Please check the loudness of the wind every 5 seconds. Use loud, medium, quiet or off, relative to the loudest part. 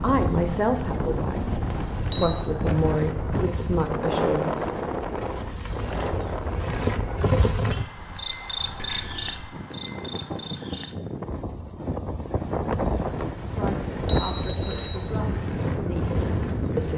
loud, medium, loud, loud.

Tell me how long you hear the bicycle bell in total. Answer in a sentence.
The bicycle bell can be heard for 3 seconds in total.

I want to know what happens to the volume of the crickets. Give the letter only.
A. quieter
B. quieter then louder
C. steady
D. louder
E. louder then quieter
E.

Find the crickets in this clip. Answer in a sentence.
The crickets can be heard from 0.0 to 16.9 s.